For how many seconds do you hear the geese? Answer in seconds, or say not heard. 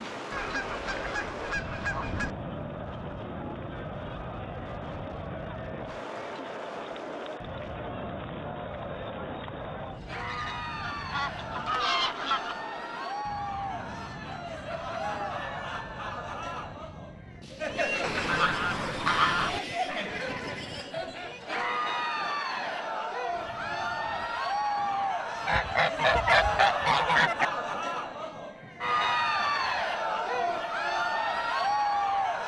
8 s.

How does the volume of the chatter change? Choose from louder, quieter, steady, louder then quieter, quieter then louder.
louder.